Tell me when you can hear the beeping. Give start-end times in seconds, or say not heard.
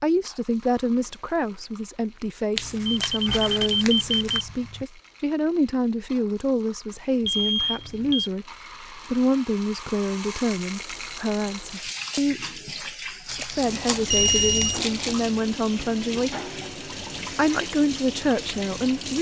2.9-4.8, 7.2-8.3, 14.1-14.8.